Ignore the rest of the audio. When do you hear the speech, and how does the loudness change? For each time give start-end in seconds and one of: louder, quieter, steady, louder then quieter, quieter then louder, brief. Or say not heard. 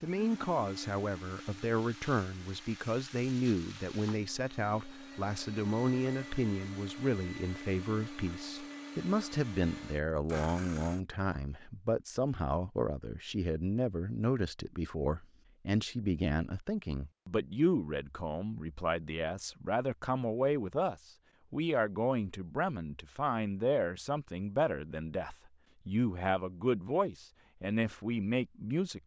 0.0-29.0 steady.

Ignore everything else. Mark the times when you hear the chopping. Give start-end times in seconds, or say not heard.
not heard.